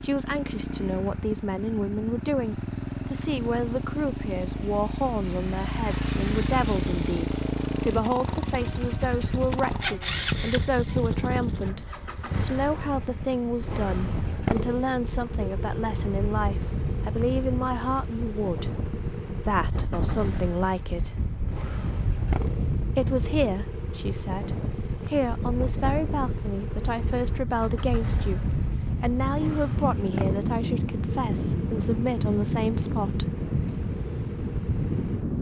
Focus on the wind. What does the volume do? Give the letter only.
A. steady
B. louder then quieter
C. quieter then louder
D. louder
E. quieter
D.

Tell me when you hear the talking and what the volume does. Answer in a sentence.
You can hear the talking from 0.0 to 21.2 s, at a steady volume; and from 22.9 to 33.4 s, at a steady volume.